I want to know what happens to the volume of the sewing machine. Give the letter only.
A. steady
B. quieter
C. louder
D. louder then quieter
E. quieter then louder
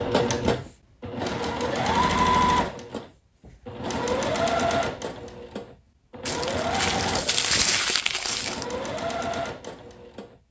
B.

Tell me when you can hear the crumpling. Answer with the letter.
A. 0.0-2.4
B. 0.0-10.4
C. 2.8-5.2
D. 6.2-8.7
D.